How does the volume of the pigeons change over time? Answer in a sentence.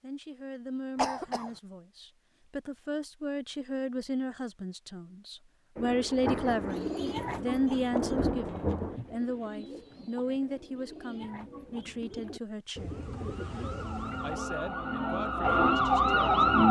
The volume of the pigeons goes down, then up.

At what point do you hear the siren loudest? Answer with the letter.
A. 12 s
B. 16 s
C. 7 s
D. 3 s
B.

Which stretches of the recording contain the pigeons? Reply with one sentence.
The pigeons can be heard from 6.3 to 14.4 s.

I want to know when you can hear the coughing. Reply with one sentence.
You can hear the coughing from 0.9 to 1.5 s.